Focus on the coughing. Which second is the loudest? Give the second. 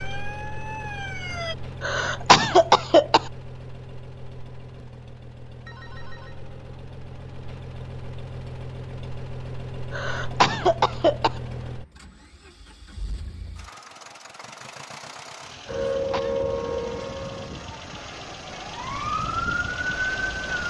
2 s.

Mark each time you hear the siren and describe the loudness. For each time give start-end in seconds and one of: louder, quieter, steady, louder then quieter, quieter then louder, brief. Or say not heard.
0.0-1.6 brief
15.7-20.6 quieter then louder.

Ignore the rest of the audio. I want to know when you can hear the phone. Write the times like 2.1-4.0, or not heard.
5.7-6.4.